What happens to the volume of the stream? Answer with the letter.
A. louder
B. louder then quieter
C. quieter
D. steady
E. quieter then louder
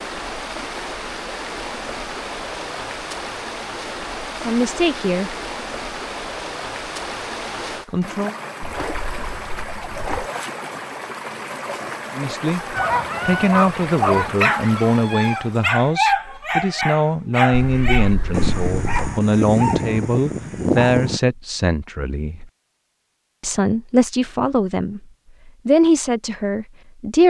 D.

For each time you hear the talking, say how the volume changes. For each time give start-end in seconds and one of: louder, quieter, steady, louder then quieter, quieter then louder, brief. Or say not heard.
4.4-5.3 brief
7.8-8.3 brief
12.2-22.4 steady
23.4-25.0 brief
25.6-27.2 brief.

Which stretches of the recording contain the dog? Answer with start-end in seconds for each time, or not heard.
12.8-21.2.